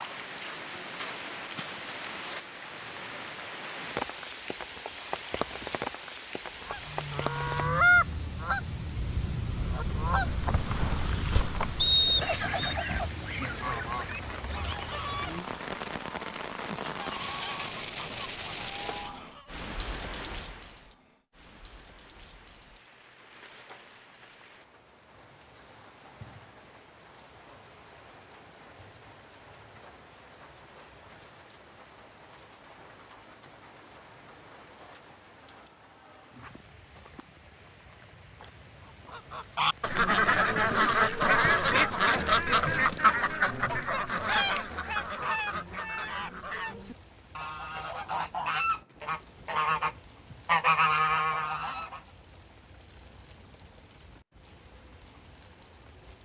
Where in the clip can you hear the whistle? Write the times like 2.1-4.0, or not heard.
11.8-12.8.